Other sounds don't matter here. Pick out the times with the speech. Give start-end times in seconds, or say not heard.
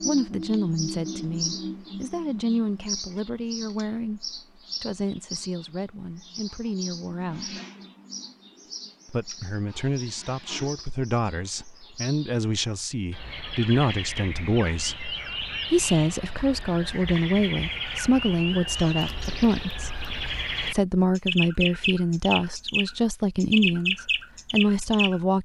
0.0-7.6, 9.1-19.9, 20.7-25.4.